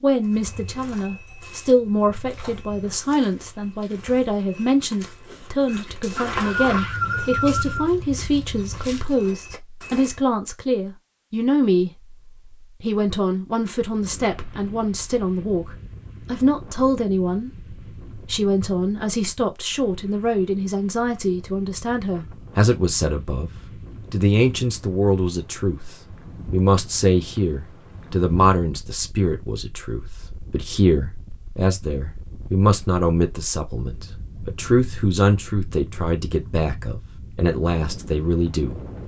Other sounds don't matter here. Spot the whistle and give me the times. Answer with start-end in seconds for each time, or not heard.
6.0-7.9.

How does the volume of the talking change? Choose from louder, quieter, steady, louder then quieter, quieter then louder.
steady.